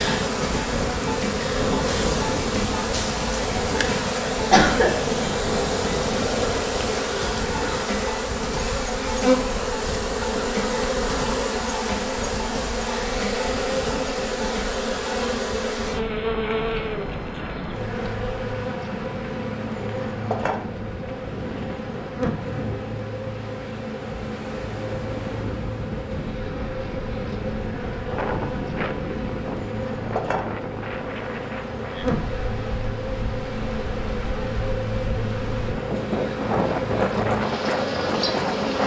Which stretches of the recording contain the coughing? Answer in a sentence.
The coughing can be heard from 4.5 to 5.3 s.